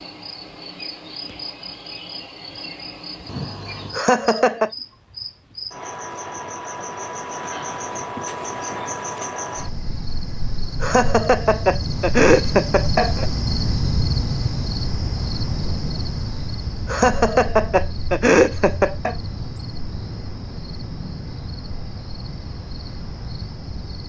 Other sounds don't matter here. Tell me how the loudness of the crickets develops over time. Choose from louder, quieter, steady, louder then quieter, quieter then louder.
louder then quieter.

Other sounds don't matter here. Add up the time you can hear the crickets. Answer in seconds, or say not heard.
24 s.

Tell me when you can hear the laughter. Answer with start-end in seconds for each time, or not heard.
4.0-4.7, 10.8-13.2, 16.9-19.1.